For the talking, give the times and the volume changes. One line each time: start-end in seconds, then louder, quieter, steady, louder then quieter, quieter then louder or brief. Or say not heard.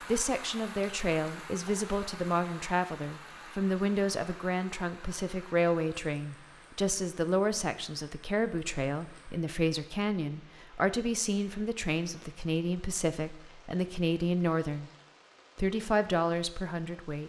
0.1-14.9 steady
15.6-17.2 brief.